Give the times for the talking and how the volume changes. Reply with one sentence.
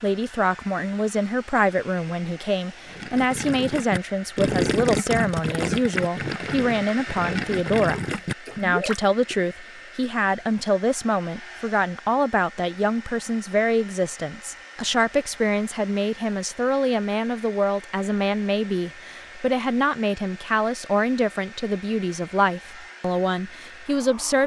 You can hear the talking from 0.0 to 24.4 s, at a steady volume.